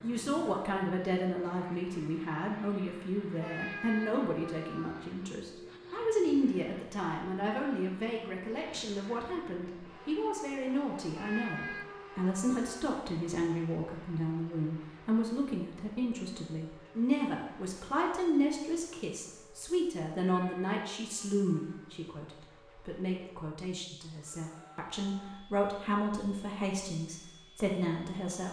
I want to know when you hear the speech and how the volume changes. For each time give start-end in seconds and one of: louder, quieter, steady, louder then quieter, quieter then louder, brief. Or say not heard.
0.0-28.4 steady.